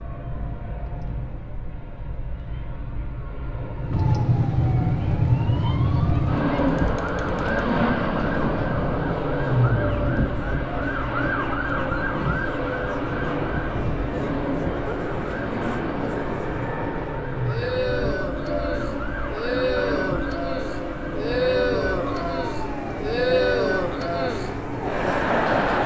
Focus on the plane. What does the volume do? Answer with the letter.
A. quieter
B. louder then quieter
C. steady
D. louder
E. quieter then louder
D.